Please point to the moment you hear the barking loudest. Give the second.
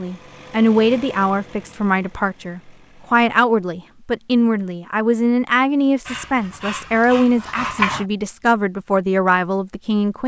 8 s.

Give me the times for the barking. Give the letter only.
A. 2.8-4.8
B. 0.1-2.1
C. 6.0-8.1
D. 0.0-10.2
C.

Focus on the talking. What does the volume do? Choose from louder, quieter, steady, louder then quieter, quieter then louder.
steady.